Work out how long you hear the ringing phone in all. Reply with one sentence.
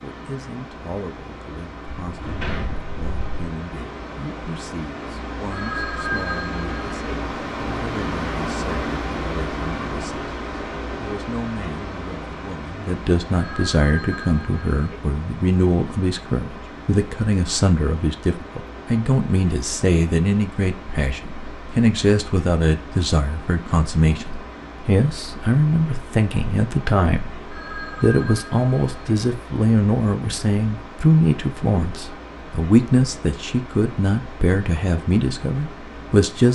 The ringing phone can be heard for 5 seconds in total.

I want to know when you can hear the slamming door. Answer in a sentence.
The slamming door can be heard from 1.9 to 3.5 s.